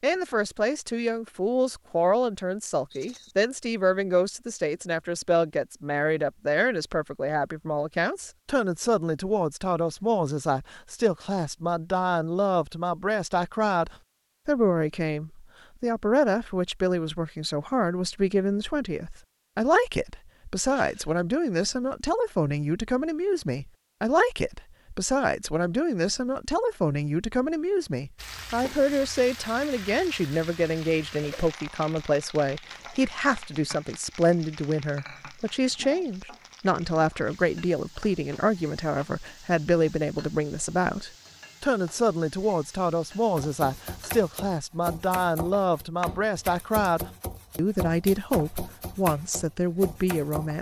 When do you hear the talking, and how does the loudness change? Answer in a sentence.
The talking can be heard from 0.0 to 50.5 s, at a steady volume.